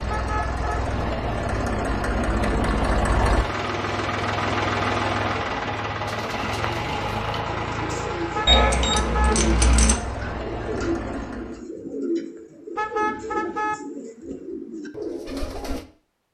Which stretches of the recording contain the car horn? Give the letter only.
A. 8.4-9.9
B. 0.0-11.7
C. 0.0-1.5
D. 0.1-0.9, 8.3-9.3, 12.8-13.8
D.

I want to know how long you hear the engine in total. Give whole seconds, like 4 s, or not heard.
12 s.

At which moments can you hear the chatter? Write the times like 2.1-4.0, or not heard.
not heard.